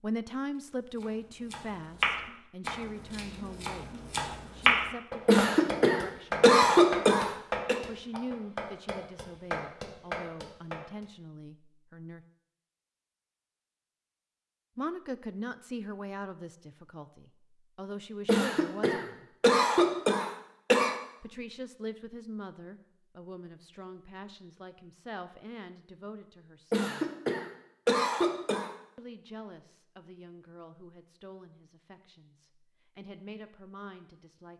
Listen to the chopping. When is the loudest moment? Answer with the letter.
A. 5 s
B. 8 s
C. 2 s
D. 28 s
A.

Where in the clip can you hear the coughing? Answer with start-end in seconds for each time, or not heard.
5.2-7.8, 18.2-20.9, 26.7-28.7.